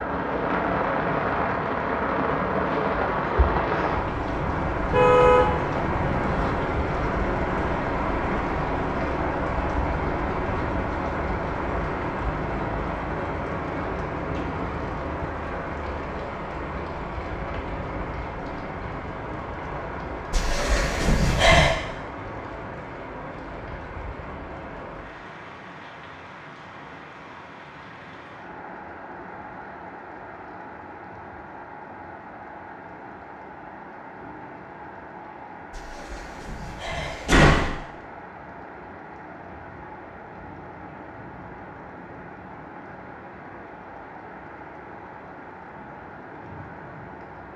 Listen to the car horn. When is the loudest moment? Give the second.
5 s.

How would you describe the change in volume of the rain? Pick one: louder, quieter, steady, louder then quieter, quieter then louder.
quieter.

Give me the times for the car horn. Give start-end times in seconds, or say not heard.
4.8-6.5.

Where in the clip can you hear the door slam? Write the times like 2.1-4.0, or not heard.
20.3-21.8, 35.7-37.7.